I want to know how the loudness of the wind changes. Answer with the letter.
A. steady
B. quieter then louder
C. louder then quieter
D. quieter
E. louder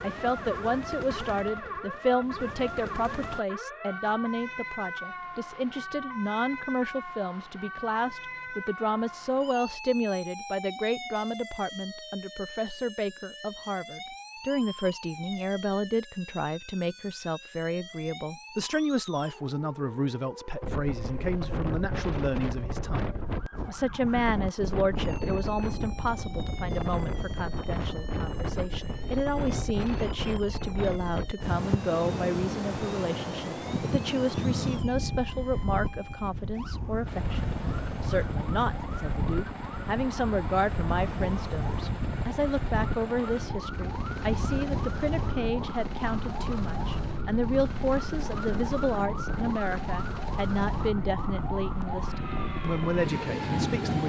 A.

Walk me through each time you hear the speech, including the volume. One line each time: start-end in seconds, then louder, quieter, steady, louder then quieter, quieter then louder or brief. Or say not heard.
0.0-54.0 steady.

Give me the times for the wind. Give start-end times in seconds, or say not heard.
20.6-54.0.